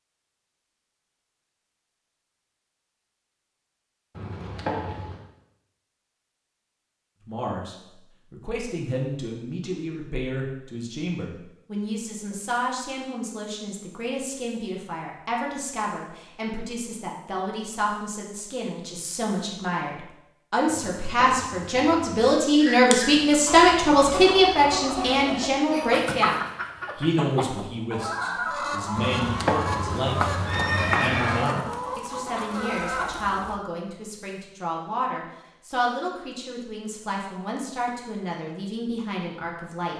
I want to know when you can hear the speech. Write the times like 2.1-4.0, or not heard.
7.2-39.9.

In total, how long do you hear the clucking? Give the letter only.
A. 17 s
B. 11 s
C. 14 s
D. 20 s
B.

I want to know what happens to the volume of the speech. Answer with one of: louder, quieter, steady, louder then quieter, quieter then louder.
louder then quieter.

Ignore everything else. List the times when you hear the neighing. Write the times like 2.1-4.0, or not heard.
4.2-5.2, 20.6-22.4, 28.9-31.4.